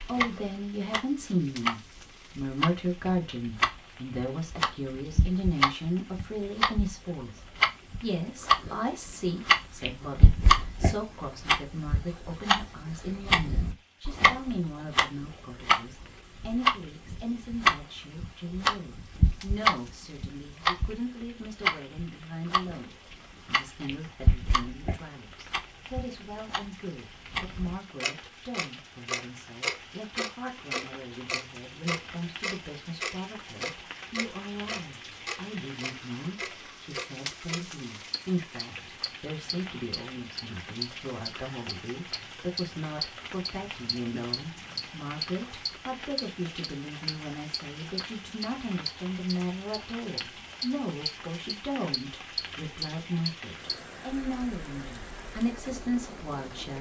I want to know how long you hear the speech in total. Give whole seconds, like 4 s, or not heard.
57 s.